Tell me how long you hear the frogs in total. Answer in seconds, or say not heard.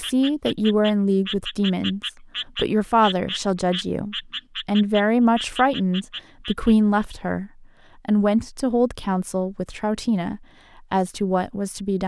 7 s.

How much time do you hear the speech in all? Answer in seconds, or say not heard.
12 s.